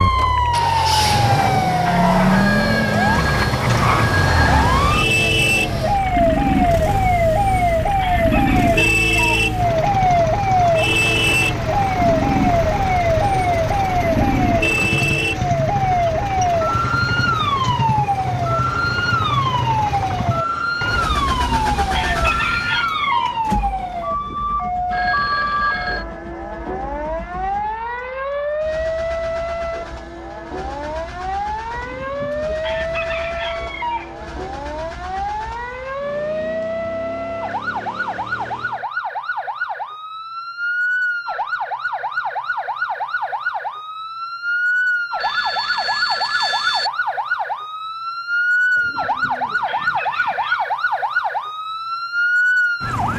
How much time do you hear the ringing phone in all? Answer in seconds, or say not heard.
5 s.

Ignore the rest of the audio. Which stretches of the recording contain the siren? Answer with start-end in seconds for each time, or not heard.
0.0-53.1.